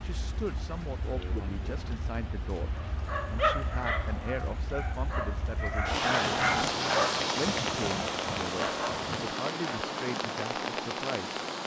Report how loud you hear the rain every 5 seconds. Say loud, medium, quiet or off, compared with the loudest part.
medium, loud, loud.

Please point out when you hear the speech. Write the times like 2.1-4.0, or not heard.
0.0-6.4, 7.3-11.4.